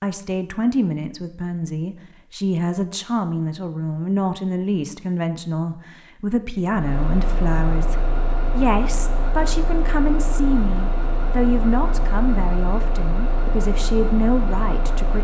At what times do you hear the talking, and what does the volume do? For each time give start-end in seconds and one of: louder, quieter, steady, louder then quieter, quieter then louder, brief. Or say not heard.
0.0-15.1 steady.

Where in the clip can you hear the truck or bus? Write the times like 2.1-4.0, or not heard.
6.7-15.1.